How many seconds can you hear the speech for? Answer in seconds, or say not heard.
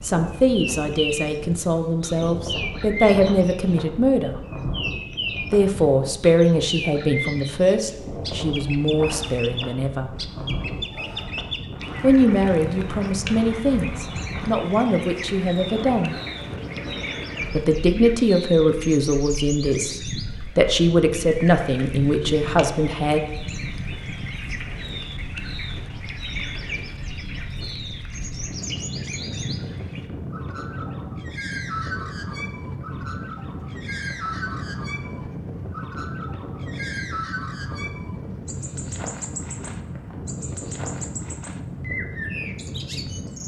19 s.